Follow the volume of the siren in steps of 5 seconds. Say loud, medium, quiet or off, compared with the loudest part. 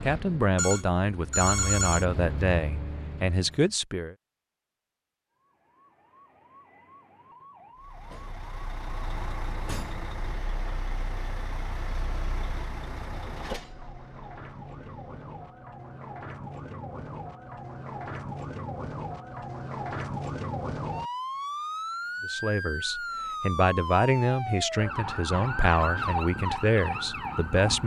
off, quiet, quiet, medium, loud, loud.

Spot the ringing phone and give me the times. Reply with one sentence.
You can hear the ringing phone from 0.6 to 2.0 s.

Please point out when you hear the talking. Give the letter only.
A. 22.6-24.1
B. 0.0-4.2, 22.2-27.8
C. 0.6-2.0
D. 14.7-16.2
B.